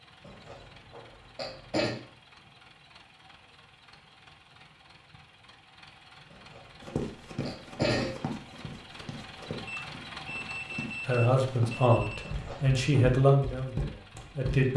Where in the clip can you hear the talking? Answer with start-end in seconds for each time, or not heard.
11.1-14.7.